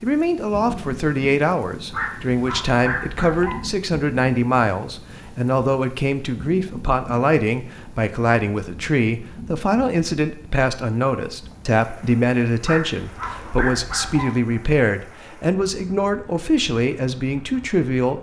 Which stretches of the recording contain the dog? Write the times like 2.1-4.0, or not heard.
1.9-3.6, 12.7-14.3.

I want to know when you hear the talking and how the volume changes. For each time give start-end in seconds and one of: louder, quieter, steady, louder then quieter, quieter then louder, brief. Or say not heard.
0.0-18.1 steady.